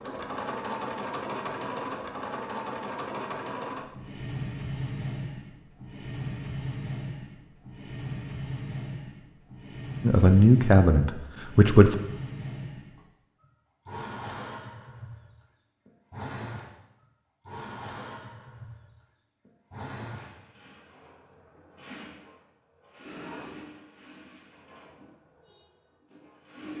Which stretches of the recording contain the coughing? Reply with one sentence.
You can't hear the coughing here.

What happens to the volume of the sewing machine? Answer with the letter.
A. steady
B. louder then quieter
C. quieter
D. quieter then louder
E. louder
C.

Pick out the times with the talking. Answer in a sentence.
The talking can be heard from 10.0 to 11.9 s.